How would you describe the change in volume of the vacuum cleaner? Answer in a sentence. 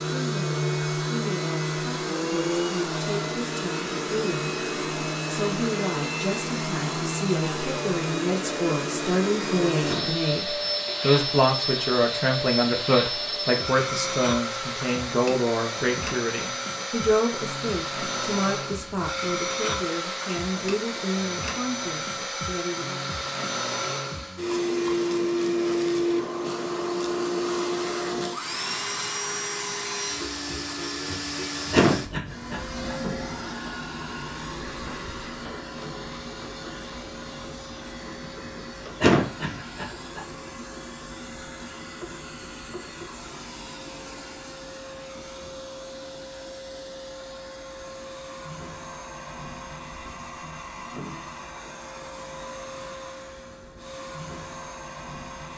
The volume of the vacuum cleaner goes down.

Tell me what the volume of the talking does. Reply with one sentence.
The volume of the talking goes up, then down.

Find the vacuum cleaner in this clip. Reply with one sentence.
You can hear the vacuum cleaner from 0.0 to 55.5 s.